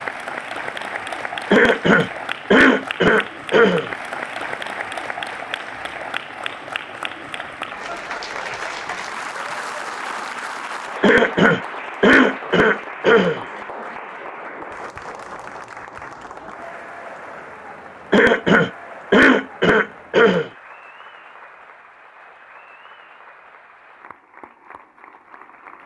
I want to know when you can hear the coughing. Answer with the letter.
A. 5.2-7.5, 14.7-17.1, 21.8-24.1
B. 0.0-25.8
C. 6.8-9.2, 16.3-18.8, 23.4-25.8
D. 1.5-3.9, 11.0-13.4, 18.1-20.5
D.